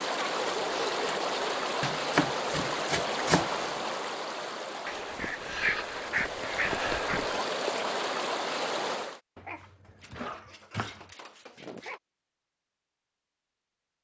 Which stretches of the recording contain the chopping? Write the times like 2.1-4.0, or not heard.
1.8-3.8, 9.3-11.1.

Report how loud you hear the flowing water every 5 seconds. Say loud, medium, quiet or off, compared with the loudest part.
loud, loud, off.